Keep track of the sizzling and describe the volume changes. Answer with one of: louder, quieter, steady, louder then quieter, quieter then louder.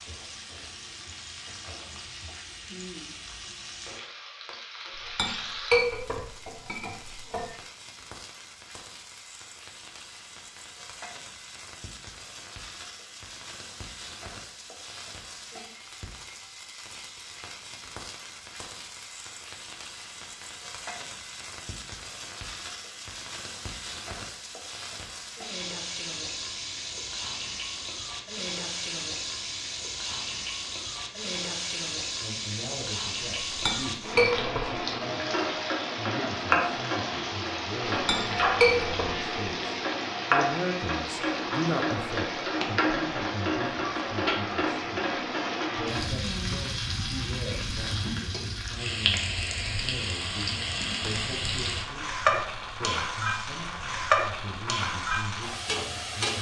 louder.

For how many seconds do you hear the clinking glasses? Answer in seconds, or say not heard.
5 s.